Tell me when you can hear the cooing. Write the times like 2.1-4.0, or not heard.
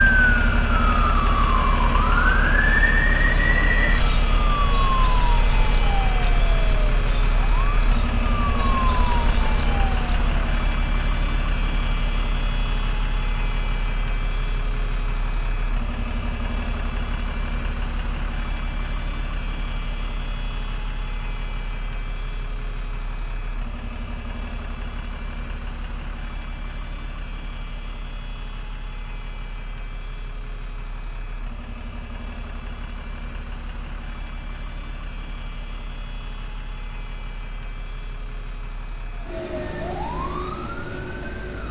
not heard.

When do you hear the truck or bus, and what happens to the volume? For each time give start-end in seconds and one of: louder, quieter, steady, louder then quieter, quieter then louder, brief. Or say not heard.
0.0-41.6 quieter.